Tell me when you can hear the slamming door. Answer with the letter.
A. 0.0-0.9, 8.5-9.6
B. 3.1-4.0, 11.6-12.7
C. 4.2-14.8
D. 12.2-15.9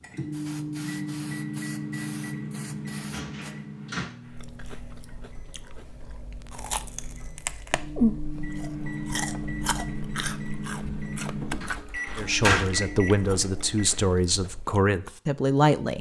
B.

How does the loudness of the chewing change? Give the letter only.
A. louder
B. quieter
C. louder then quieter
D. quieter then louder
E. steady
C.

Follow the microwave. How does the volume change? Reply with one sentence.
The volume of the microwave goes down, then up.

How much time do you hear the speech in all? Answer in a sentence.
You can hear the speech for 4 seconds altogether.